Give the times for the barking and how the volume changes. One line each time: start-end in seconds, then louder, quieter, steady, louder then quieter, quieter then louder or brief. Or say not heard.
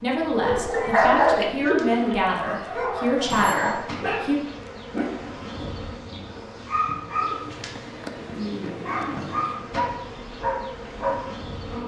0.3-11.4 quieter.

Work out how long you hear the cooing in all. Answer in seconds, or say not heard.
4 s.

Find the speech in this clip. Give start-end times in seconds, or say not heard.
0.0-4.3.